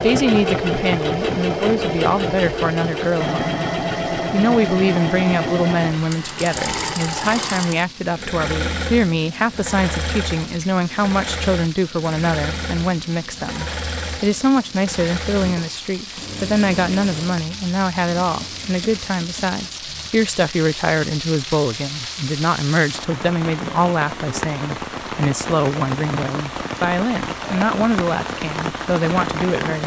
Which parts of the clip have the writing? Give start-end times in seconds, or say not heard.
not heard.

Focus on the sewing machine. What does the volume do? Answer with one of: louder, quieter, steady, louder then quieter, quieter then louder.
quieter.